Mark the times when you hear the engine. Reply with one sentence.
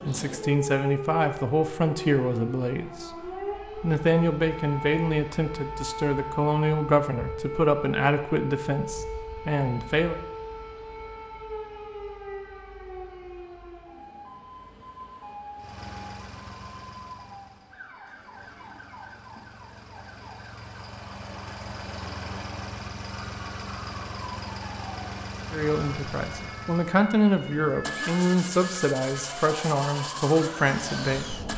The engine can be heard from 15.6 to 31.5 s.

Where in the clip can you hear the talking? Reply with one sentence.
You can hear the talking from 0.0 to 10.2 s and from 25.5 to 31.4 s.